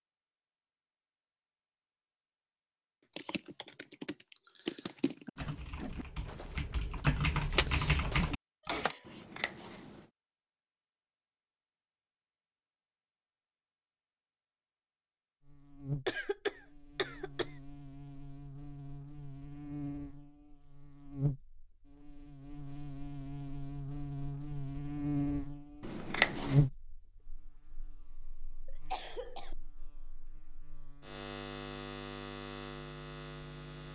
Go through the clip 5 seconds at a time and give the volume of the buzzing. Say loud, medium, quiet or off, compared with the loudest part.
off, off, off, medium, medium, loud, medium.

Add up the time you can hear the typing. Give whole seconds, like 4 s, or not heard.
6 s.